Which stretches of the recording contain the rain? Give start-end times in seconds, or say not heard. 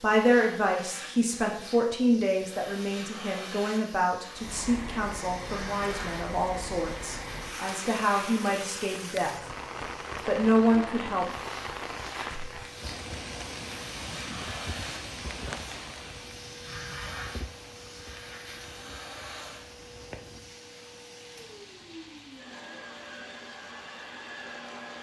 4.3-24.9.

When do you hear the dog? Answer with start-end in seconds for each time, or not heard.
not heard.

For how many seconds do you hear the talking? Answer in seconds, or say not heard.
10 s.